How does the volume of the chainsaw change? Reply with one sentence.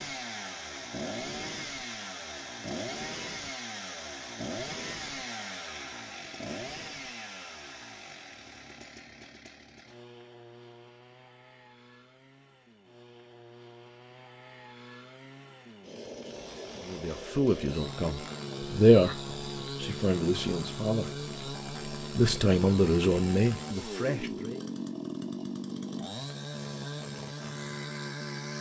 The volume of the chainsaw goes down, then up.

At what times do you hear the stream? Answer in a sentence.
You can't hear the stream here.